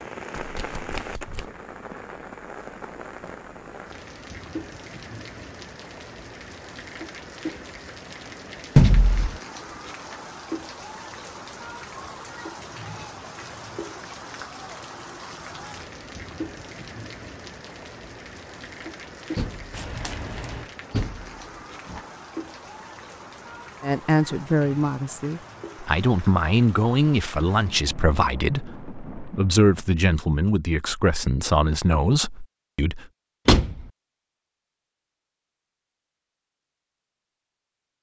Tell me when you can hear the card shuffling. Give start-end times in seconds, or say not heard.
0.3-1.5, 19.7-20.7.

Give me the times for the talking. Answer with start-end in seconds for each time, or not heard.
23.8-33.0.